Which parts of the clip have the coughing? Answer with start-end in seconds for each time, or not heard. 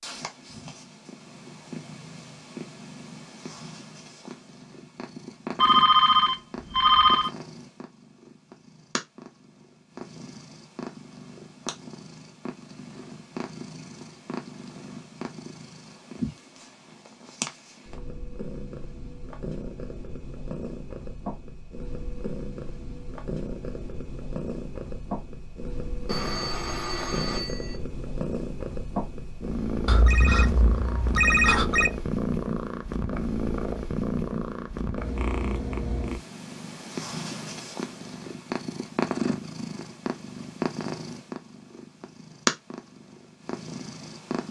not heard.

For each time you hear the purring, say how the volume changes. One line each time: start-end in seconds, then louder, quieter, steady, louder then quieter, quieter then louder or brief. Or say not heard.
0.0-44.4 louder.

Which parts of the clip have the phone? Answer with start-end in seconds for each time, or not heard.
5.5-7.3, 26.1-27.8, 29.9-31.9.